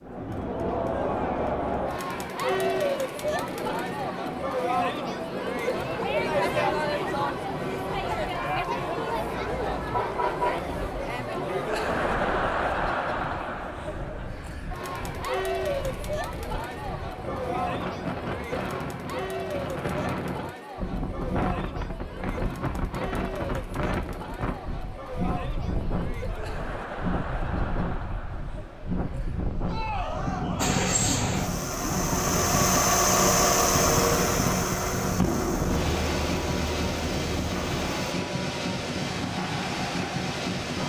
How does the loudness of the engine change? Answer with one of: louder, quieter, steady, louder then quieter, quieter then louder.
louder then quieter.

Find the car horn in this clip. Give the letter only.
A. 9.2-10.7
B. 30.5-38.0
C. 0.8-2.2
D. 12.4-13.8
A.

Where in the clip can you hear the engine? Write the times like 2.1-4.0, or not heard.
30.5-38.0.